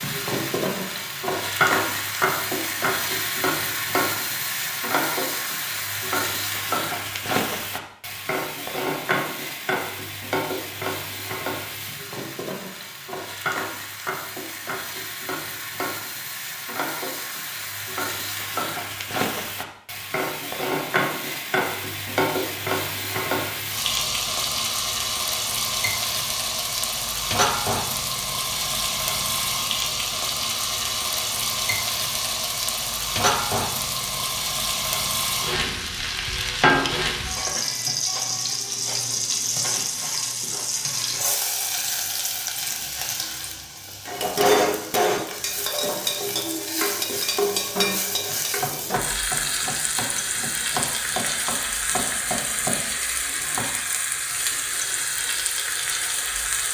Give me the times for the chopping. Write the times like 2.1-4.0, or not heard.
48.2-53.8.